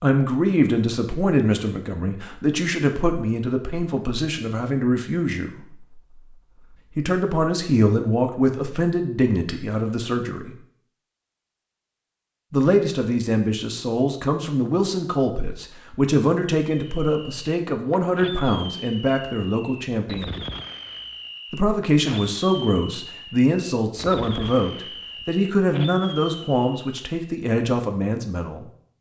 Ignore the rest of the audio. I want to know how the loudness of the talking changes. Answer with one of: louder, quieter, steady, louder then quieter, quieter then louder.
steady.